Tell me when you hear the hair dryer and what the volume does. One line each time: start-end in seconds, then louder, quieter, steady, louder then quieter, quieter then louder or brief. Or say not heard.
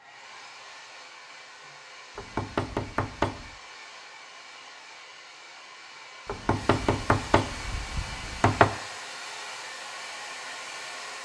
0.0-11.1 louder.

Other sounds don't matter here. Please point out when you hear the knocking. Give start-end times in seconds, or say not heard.
2.1-3.5, 6.2-8.7.